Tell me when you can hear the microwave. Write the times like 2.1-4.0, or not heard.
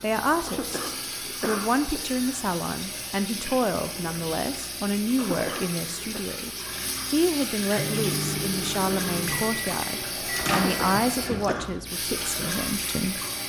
7.8-11.7.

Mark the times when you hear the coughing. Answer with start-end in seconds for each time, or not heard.
0.5-2.0, 5.2-6.2, 10.6-11.7.